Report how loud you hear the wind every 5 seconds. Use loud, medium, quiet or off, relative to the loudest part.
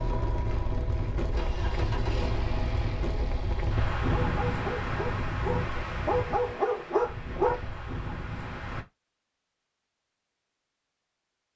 loud, loud, off.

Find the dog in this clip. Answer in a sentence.
You can hear the dog from 4.1 to 7.6 s.